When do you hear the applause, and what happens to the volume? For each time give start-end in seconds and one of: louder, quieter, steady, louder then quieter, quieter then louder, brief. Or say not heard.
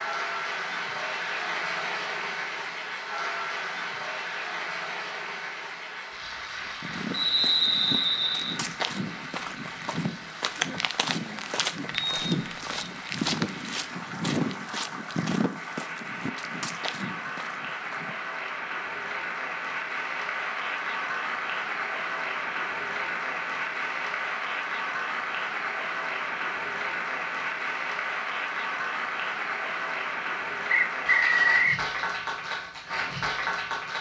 0.0-33.9 quieter then louder.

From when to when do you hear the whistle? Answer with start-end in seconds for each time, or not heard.
7.1-8.6, 11.9-12.9, 30.7-31.8.